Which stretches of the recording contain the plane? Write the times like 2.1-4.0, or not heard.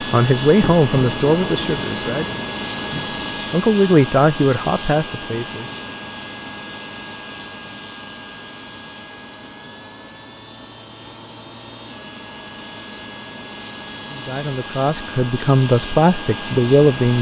0.0-17.1.